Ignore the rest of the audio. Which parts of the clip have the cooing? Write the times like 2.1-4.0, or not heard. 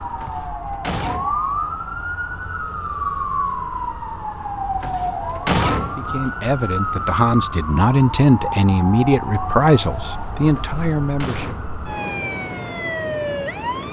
not heard.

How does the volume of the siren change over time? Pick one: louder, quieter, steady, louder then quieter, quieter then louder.
steady.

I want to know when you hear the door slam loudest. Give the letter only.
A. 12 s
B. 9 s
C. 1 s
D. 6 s
D.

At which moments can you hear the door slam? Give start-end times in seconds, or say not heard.
0.2-1.6, 4.8-6.2, 10.6-11.8.